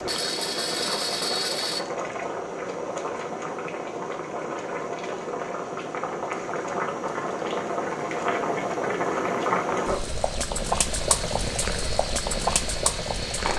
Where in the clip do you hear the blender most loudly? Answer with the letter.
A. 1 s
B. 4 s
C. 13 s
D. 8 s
A.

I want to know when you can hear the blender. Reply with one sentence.
You can hear the blender from 0.0 to 1.9 s and from 10.8 to 13.5 s.